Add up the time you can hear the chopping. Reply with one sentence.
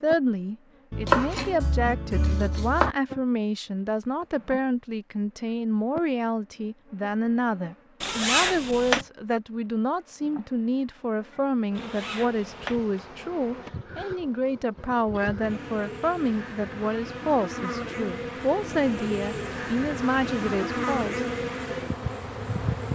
You can hear the chopping for 2 seconds altogether.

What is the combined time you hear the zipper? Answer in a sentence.
The zipper can be heard for 2 seconds in total.